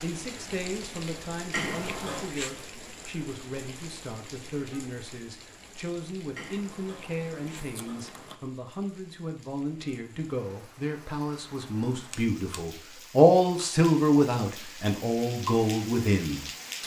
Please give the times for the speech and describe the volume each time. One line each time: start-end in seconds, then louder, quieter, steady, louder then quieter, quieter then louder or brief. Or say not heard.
0.0-16.8 louder.